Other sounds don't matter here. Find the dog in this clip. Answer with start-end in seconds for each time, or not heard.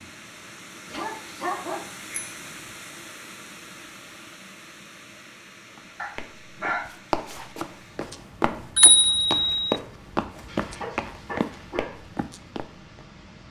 0.9-1.9, 6.0-7.0, 10.4-11.9.